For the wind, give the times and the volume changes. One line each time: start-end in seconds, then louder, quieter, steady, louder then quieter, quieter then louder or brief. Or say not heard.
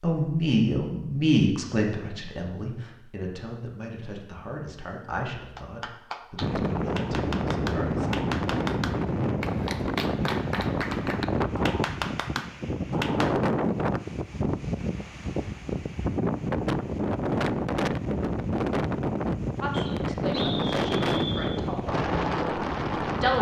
6.4-23.3 steady.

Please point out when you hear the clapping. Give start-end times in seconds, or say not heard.
5.5-13.3.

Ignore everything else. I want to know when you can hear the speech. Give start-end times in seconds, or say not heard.
0.0-8.1, 19.6-23.3.